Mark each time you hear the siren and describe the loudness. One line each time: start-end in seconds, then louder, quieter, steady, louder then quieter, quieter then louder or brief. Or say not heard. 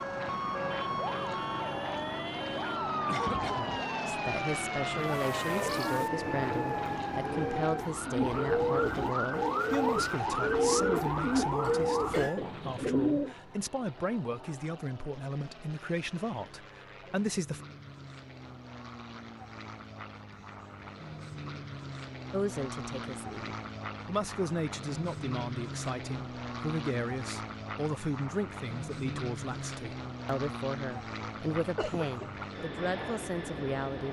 0.0-12.3 steady.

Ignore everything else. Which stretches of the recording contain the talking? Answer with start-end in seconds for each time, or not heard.
4.0-17.6, 22.3-34.0.